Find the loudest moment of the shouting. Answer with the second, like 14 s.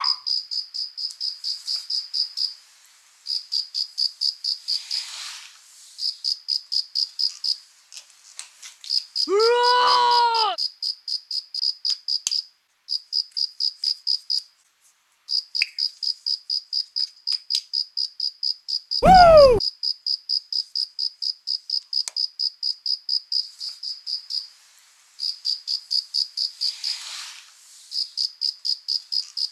19 s.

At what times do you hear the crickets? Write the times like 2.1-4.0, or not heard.
0.0-29.4.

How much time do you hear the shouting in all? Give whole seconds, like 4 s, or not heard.
2 s.